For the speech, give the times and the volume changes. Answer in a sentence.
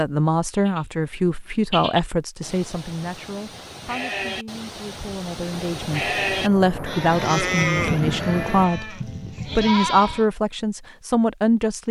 The speech can be heard from 0.0 to 11.8 s, getting quieter then louder.